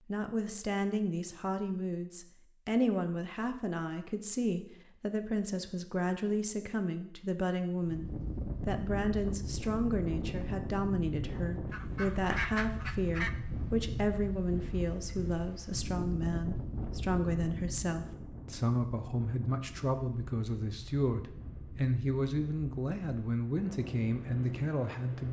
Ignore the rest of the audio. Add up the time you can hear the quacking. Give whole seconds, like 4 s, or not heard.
2 s.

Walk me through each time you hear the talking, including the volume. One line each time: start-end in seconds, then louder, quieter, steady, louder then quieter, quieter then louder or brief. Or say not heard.
0.1-25.2 steady.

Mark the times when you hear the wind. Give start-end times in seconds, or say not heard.
7.8-25.2.